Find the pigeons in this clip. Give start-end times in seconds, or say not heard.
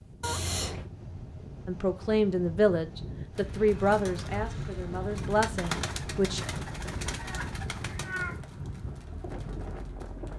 3.3-10.3.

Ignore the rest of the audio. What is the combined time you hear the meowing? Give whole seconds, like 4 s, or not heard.
2 s.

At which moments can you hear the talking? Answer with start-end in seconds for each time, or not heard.
1.6-6.4.